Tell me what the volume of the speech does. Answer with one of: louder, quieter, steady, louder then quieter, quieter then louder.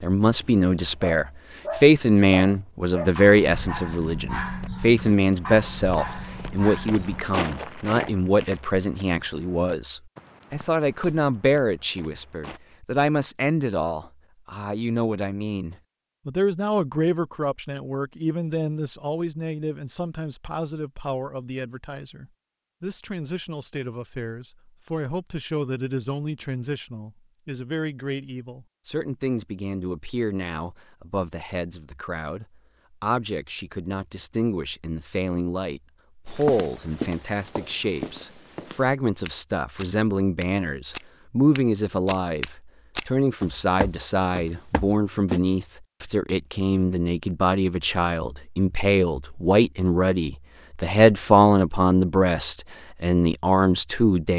quieter then louder.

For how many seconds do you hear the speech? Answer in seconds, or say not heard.
54 s.